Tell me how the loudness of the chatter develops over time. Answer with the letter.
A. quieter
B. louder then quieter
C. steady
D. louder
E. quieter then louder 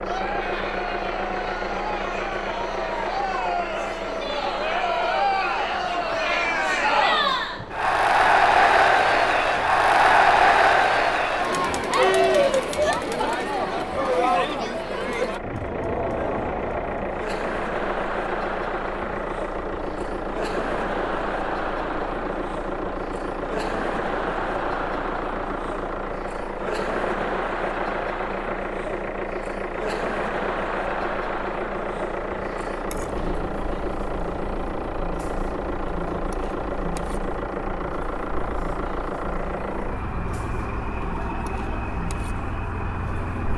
A.